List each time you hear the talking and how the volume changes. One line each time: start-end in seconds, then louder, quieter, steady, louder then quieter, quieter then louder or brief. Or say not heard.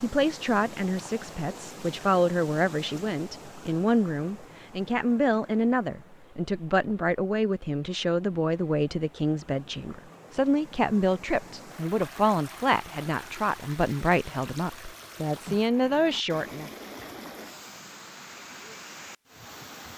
0.0-16.7 steady.